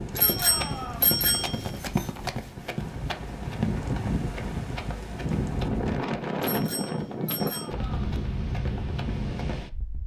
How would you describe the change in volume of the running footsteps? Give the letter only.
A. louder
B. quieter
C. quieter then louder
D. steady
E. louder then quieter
B.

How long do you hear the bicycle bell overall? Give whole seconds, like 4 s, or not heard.
3 s.